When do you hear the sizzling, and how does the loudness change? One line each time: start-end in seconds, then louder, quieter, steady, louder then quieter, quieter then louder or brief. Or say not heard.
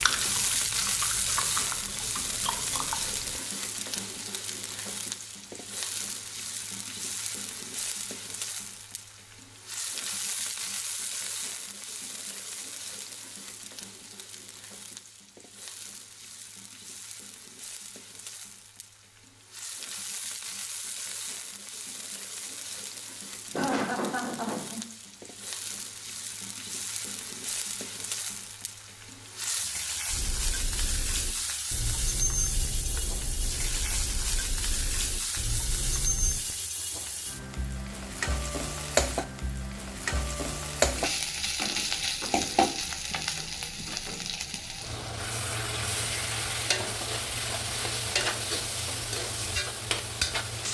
0.0-50.7 quieter then louder.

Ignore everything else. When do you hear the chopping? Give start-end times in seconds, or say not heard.
not heard.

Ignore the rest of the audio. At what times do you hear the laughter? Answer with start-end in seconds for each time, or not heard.
23.5-24.8.